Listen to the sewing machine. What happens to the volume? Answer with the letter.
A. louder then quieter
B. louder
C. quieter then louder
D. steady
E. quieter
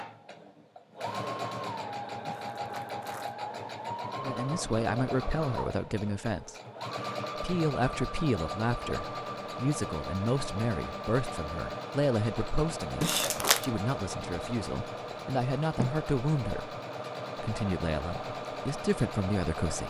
D.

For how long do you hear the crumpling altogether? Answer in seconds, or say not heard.
2 s.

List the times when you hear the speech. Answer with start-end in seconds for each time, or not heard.
4.2-6.5, 7.3-16.8, 17.4-19.8.